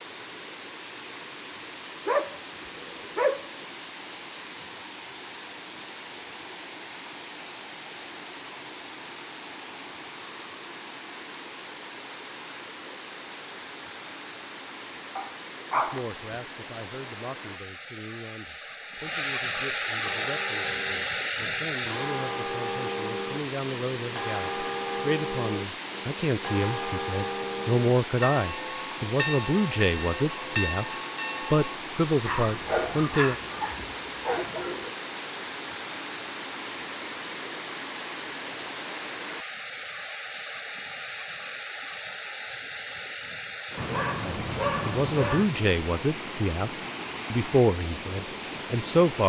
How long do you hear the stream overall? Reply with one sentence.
The stream can be heard for 49 seconds in total.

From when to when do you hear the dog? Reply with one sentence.
The dog can be heard from 2.0 to 3.6 s, from 15.2 to 16.1 s, from 32.2 to 35.0 s and from 43.8 to 45.5 s.